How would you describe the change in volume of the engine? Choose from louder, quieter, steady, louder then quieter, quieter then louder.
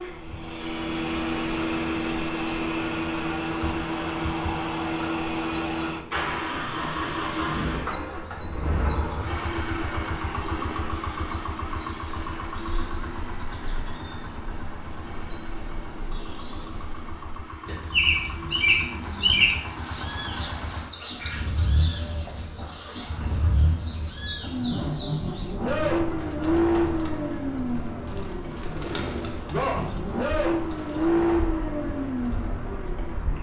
quieter then louder.